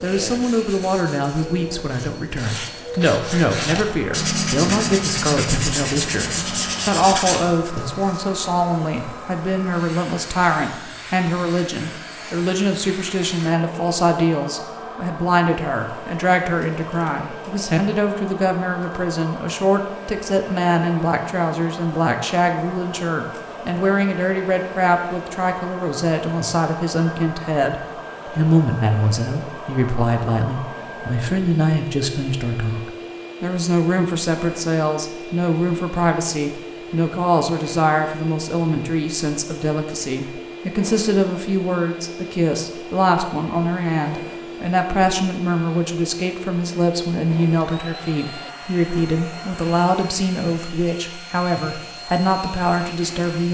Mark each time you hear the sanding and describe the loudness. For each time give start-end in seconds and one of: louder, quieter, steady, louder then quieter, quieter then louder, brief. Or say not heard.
0.0-8.2 louder.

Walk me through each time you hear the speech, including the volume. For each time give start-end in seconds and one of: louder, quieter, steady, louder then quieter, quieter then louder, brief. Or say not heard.
0.0-53.4 steady.